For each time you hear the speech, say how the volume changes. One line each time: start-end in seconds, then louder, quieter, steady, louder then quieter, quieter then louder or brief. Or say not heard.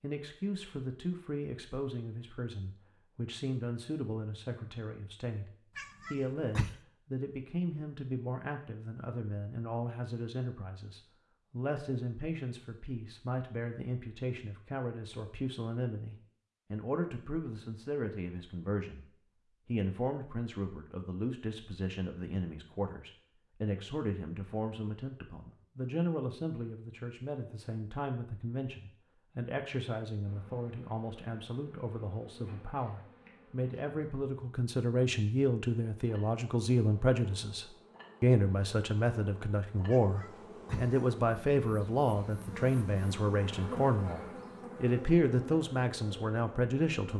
0.0-47.1 louder.